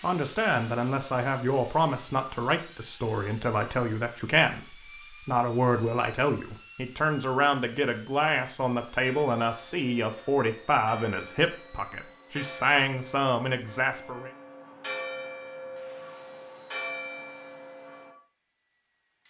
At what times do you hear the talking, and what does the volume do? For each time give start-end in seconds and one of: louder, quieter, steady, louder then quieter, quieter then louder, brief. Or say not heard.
0.0-14.3 steady.